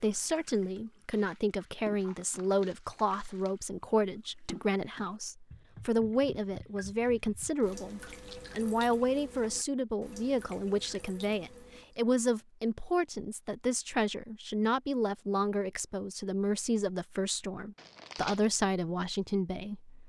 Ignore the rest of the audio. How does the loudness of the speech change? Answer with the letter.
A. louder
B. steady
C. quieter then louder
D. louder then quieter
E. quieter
B.